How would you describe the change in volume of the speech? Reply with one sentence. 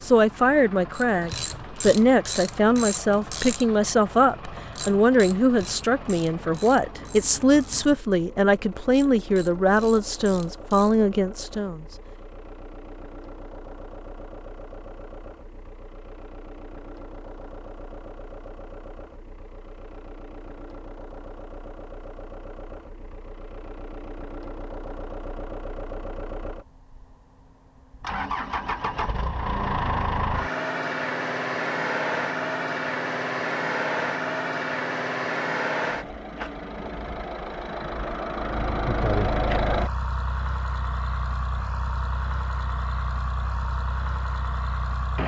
The volume of the speech stays about the same.